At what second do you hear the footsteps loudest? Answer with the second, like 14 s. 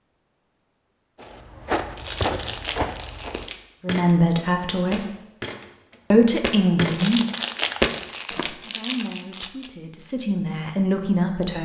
8 s.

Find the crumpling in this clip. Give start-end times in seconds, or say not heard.
1.9-3.6, 6.9-9.7.